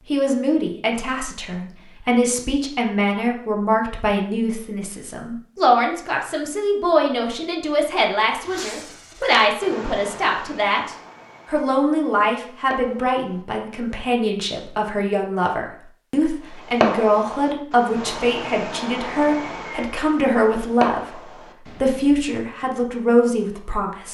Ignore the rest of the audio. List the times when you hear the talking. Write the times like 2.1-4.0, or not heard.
0.1-24.0.